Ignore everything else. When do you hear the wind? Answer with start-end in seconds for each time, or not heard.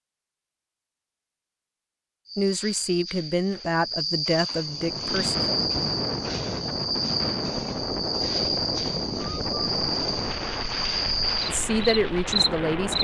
4.7-13.0.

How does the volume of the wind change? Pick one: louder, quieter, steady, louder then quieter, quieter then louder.
steady.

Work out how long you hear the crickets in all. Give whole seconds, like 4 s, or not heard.
11 s.